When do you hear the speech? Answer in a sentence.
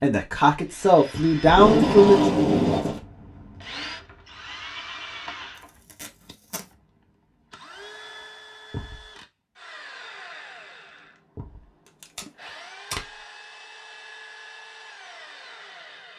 The speech can be heard from 0.0 to 2.4 s.